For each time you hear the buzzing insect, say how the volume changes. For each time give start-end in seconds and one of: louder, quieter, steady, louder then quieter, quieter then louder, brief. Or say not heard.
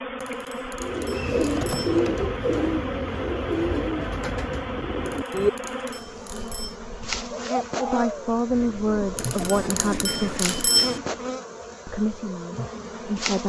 0.0-13.4 steady.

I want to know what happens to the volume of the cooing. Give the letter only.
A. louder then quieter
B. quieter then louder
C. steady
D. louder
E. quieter
E.